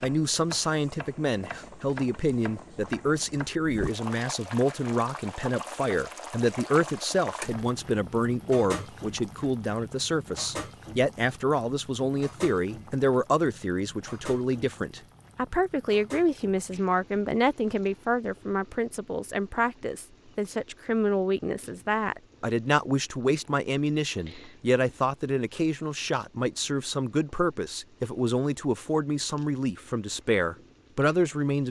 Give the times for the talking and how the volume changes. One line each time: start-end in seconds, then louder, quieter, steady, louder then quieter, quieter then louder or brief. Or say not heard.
0.0-31.6 steady.